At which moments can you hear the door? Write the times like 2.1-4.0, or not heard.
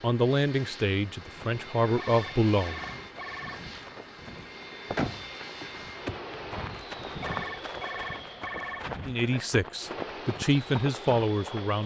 5.0-6.2.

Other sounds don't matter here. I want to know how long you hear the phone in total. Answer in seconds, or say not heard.
3 s.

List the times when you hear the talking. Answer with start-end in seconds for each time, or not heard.
0.0-2.8, 9.1-11.8.